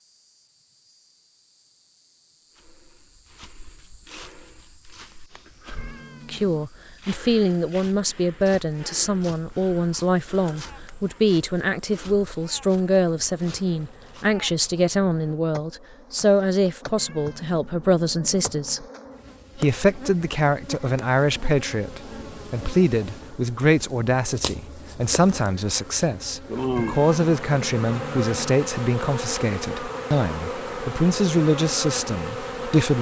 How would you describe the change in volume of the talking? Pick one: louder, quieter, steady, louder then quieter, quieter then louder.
steady.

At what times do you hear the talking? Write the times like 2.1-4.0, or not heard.
6.2-18.9, 19.6-32.9.